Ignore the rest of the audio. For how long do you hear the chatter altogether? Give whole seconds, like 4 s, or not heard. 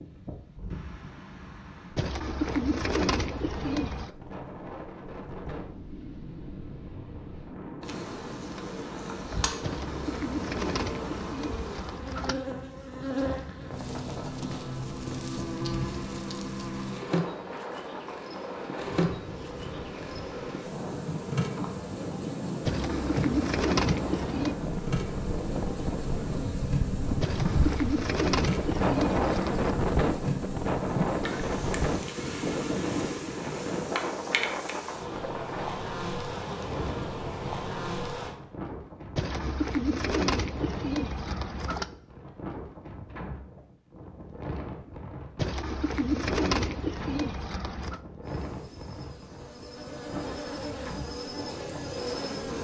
not heard.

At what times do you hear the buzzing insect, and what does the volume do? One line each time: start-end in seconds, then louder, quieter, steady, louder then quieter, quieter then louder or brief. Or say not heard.
7.8-38.4 steady
48.2-52.5 louder.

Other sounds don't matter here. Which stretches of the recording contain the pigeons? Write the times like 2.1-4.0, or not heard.
1.9-4.1, 9.6-12.3, 22.6-24.6, 27.2-29.7, 39.1-41.9, 45.4-48.0.